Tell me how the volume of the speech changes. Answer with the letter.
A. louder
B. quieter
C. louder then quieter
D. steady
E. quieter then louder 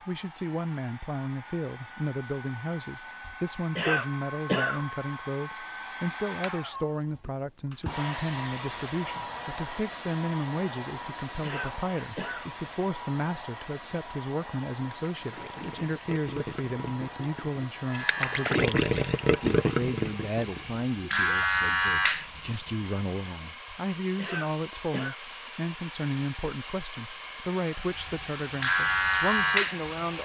D.